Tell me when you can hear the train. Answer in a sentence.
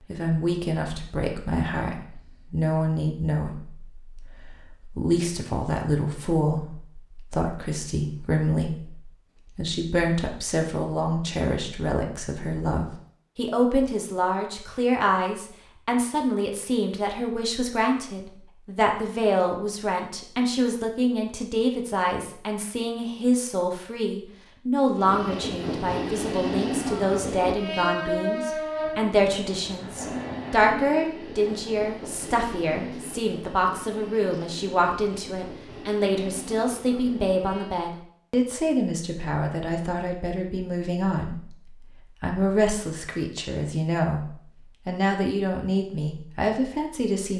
The train can be heard from 24.9 to 37.8 s.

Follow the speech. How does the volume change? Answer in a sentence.
The loudness of the speech stays about the same.